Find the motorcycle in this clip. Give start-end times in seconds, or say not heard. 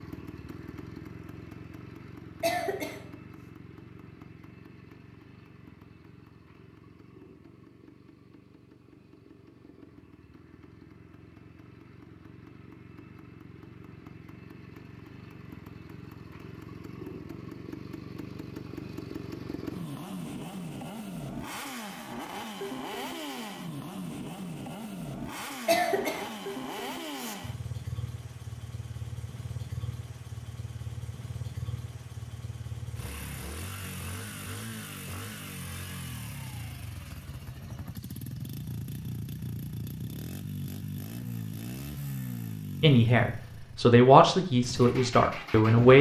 0.0-45.9.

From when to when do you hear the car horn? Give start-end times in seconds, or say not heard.
not heard.